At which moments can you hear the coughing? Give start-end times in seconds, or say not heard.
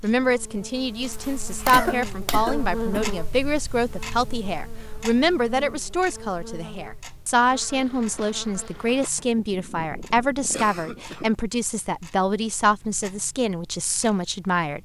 1.6-3.0, 9.3-11.3.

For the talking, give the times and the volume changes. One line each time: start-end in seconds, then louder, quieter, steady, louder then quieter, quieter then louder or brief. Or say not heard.
0.0-14.7 steady.